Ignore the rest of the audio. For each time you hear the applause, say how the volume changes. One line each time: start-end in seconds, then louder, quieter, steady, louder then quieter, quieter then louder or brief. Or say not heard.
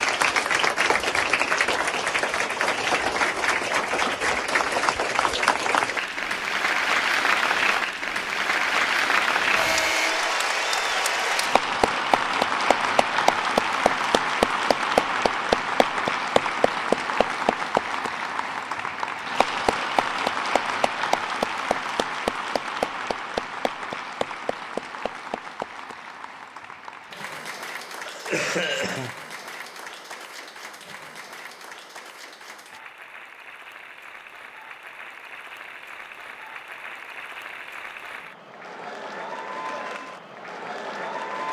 0.0-41.4 quieter.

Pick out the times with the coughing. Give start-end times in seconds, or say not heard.
28.1-29.1.